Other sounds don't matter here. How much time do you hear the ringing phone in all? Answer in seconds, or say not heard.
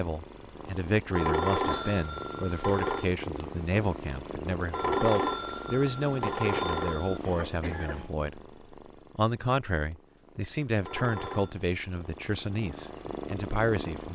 5 s.